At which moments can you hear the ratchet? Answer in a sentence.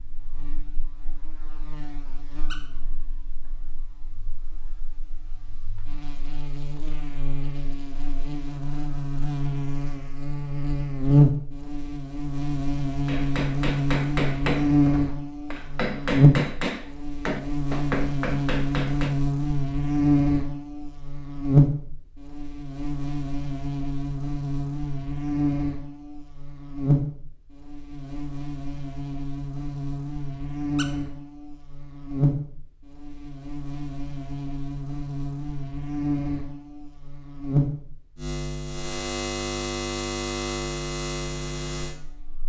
The ratchet can't be heard in this clip.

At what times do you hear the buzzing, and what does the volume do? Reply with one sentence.
You can hear the buzzing from 0.0 to 42.4 s, getting louder then quieter.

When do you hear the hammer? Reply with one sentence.
You can hear the hammer from 13.1 to 19.1 s.